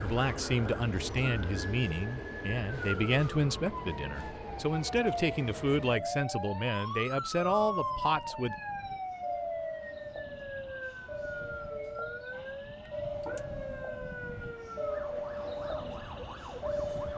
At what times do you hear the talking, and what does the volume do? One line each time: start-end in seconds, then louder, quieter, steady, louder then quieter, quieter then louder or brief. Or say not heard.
0.0-8.6 steady.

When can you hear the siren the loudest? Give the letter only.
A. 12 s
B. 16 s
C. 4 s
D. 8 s
D.